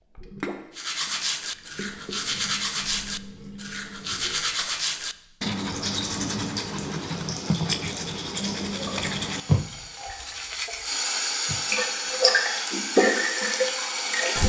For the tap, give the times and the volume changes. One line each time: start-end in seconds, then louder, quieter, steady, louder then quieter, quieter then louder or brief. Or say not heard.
0.1-14.4 louder.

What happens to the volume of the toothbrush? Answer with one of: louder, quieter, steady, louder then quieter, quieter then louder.
steady.